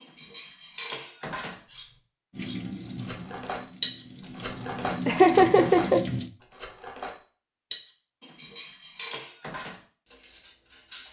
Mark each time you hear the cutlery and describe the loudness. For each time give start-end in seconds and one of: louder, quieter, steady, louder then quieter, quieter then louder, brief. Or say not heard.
0.0-11.0 louder then quieter.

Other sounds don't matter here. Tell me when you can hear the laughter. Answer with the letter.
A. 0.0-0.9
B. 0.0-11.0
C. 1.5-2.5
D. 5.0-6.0
D.